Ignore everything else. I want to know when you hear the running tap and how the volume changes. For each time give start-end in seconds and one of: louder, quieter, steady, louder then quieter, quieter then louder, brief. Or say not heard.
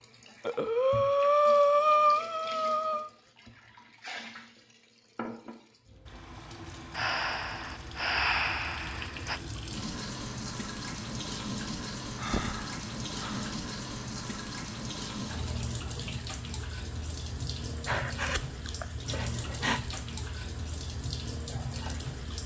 0.0-22.4 louder.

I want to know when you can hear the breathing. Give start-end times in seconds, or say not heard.
0.5-3.1, 7.0-9.4, 12.2-13.5, 17.9-19.9.